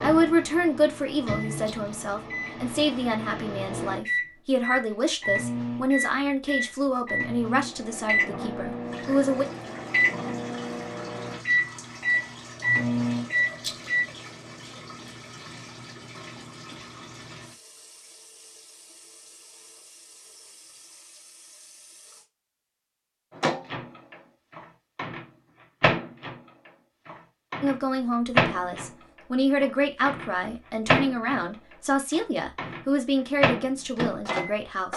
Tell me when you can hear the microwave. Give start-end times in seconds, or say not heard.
0.0-14.1, 23.3-34.9.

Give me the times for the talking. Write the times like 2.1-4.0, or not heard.
0.0-9.4, 27.6-34.9.